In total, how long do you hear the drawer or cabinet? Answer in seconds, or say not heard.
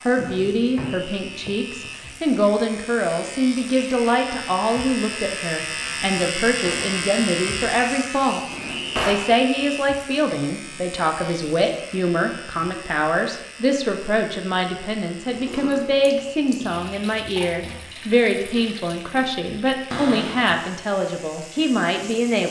3 s.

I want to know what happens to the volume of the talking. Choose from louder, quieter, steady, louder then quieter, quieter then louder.
steady.